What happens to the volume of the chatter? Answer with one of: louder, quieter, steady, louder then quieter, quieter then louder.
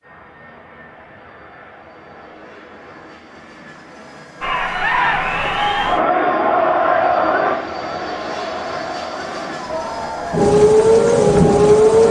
quieter.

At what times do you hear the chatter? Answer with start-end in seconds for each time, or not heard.
4.4-12.0.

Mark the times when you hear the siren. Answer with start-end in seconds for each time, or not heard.
10.3-12.0.